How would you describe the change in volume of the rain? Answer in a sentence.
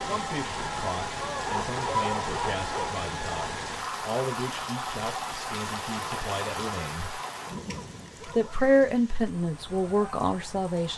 The volume of the rain goes down.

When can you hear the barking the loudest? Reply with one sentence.
The loudest moment of the barking is at 2 seconds.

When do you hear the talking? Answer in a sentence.
The talking can be heard from 0.0 to 7.2 s and from 8.2 to 10.9 s.